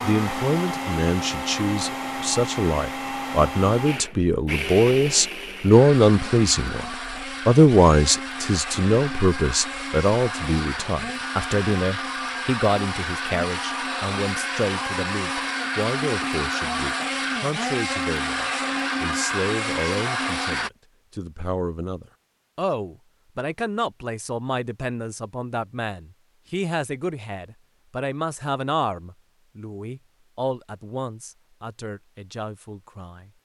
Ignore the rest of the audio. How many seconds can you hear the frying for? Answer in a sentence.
The frying can't be heard in this clip.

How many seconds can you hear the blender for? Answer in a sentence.
The blender can be heard for 21 seconds in total.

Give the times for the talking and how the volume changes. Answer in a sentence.
The talking can be heard from 0.0 to 33.3 s, getting quieter.